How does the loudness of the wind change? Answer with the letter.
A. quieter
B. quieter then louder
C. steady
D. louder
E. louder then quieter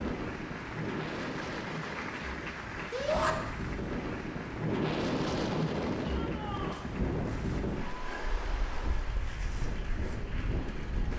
E.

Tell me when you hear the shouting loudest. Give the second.
3 s.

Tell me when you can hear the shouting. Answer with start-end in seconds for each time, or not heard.
2.9-3.4, 6.0-6.9.